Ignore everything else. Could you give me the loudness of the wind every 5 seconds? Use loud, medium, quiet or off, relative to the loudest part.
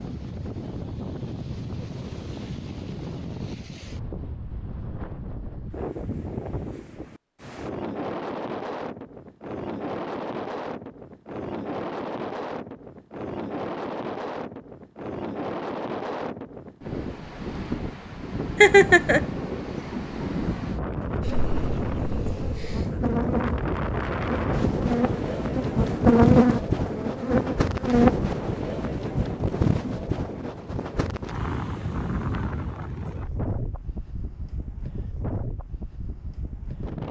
medium, medium, medium, medium, loud, loud, medium, medium.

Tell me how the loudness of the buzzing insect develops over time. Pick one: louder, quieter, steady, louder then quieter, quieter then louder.
louder then quieter.